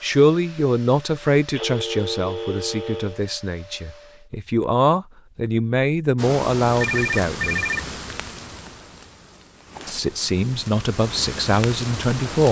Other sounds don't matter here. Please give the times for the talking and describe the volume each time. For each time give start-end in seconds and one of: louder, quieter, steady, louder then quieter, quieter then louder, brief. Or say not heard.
0.0-7.7 quieter then louder
9.8-12.4 brief.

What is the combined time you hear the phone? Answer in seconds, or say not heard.
3 s.